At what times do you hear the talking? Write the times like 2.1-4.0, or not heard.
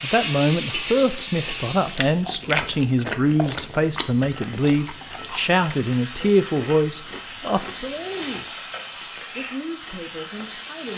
0.0-8.6, 9.3-10.9.